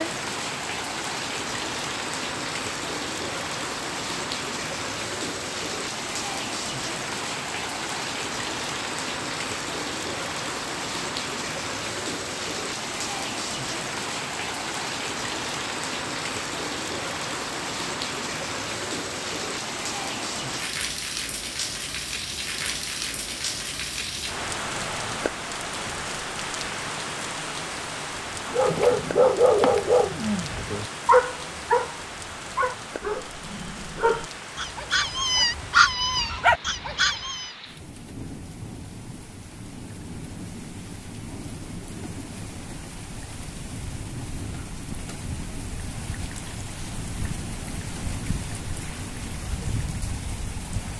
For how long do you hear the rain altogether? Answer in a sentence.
The rain can be heard for 51 seconds in total.